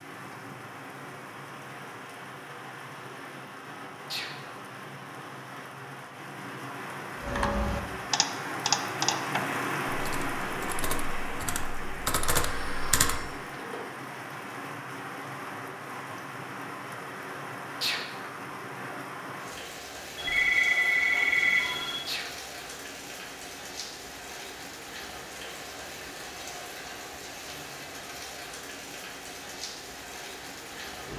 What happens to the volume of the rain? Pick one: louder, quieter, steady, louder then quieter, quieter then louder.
louder then quieter.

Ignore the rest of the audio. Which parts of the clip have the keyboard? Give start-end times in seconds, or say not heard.
7.2-13.3.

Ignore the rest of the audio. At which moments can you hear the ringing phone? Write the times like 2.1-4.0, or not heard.
12.3-13.8, 20.1-22.0.